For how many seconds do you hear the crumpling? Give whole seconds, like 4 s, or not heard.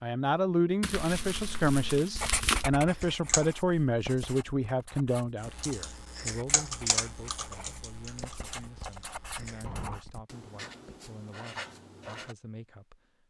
2 s.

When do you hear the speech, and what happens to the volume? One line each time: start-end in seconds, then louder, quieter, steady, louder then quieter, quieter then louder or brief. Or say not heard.
0.0-13.2 quieter.